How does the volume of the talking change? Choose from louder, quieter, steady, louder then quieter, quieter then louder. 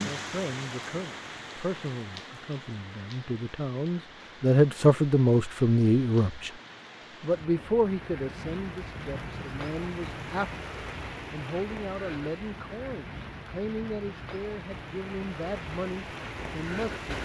louder then quieter.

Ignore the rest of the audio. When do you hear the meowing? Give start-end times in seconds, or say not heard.
not heard.